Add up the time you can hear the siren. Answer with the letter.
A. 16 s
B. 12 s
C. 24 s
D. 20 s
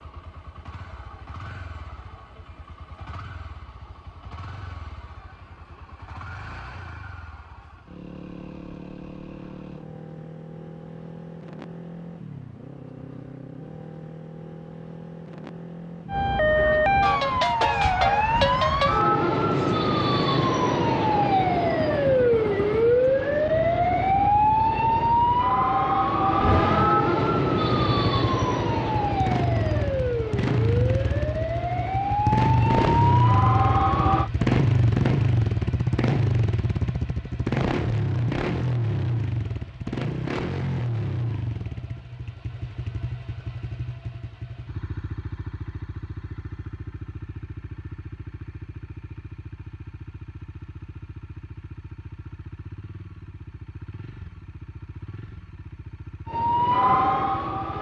D.